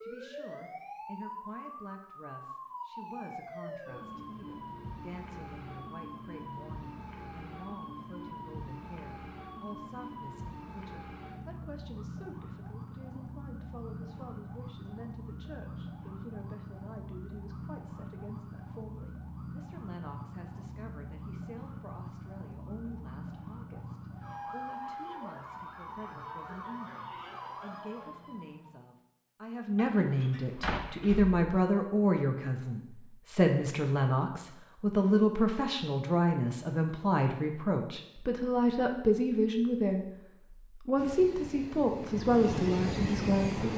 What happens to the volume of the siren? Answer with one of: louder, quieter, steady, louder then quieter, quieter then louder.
steady.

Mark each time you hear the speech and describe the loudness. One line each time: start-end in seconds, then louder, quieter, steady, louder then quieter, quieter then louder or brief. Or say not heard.
0.0-40.0 louder
40.8-43.7 brief.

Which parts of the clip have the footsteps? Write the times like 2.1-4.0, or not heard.
not heard.